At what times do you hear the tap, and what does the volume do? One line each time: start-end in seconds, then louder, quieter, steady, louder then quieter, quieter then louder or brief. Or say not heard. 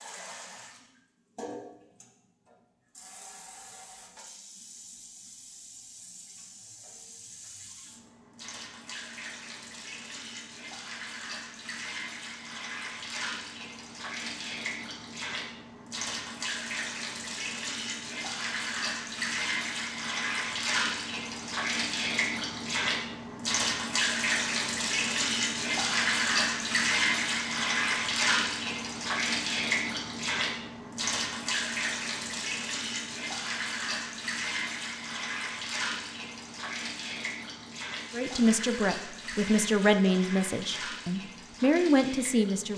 0.0-42.7 louder then quieter.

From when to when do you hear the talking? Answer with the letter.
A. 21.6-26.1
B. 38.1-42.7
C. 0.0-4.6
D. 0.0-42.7
B.